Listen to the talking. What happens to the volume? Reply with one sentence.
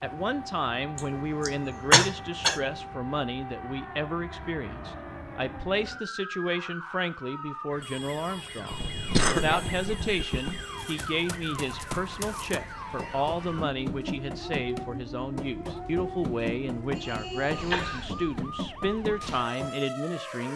The loudness of the talking stays about the same.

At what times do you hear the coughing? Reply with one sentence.
You can hear the coughing from 0.9 to 2.6 s, from 8.7 to 10.7 s and from 16.9 to 18.4 s.